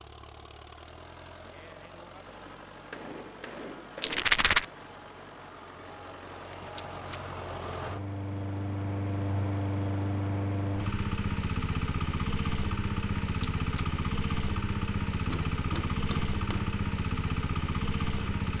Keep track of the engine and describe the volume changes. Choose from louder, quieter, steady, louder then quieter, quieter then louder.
louder.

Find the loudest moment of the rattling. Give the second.
4 s.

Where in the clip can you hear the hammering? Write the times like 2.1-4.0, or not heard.
2.5-4.2, 15.3-16.8.